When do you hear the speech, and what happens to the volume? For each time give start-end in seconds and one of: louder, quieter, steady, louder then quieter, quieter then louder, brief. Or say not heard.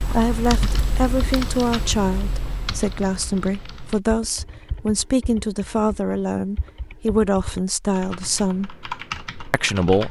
0.0-8.7 steady
9.5-10.0 brief.